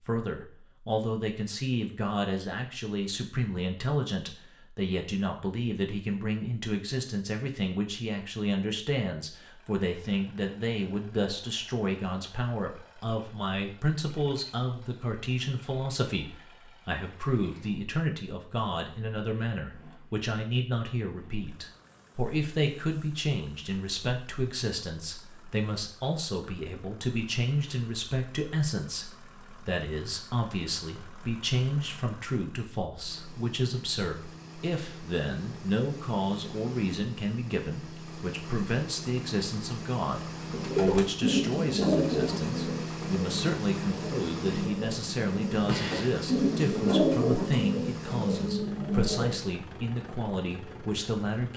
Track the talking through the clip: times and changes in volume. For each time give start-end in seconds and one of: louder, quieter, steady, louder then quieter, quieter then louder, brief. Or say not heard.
0.1-51.5 steady.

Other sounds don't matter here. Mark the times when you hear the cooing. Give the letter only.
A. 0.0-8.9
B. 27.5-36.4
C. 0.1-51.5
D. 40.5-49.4
D.